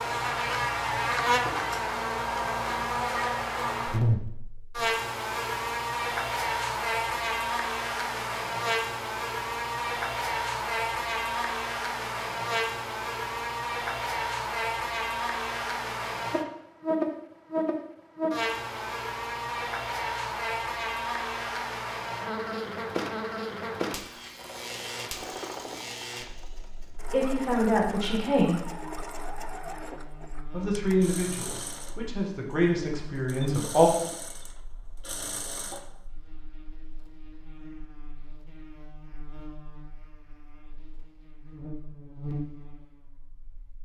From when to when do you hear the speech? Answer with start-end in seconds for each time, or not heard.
27.1-28.6, 30.5-33.9.